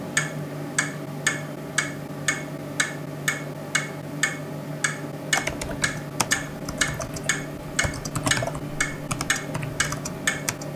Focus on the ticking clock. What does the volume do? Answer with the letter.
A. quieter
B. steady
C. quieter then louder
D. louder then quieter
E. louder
B.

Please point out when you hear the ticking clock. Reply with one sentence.
The ticking clock can be heard from 0.0 to 10.7 s.